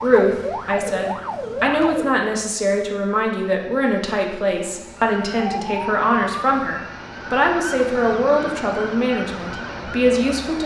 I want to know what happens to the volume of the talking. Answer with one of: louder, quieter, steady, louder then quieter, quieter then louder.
steady.